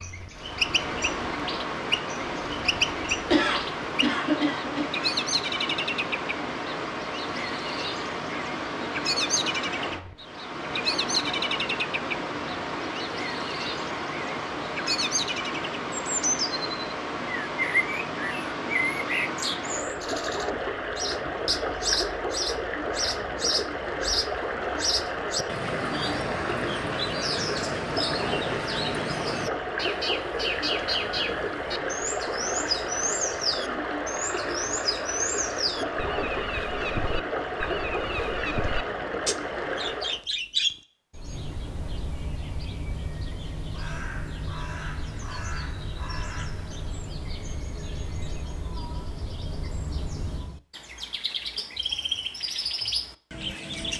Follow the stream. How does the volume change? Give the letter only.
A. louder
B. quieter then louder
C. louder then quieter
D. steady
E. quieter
D.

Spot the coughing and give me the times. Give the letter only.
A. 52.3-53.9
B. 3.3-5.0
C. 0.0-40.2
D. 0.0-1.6
B.